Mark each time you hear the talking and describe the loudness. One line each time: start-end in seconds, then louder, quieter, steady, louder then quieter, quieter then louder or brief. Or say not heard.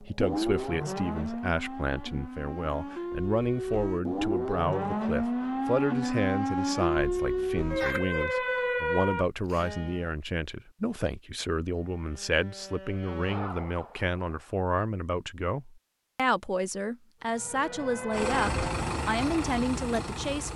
0.0-20.5 steady.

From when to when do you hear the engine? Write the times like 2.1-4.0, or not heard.
18.1-20.5.